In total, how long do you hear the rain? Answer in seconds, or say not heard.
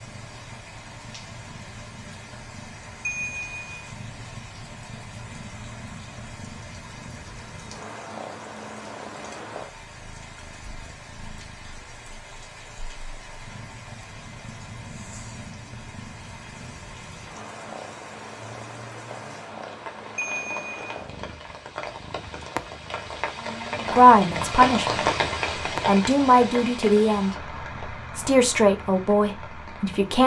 30 s.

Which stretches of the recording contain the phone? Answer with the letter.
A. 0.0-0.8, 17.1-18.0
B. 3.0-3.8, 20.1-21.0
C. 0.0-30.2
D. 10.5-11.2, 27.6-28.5
B.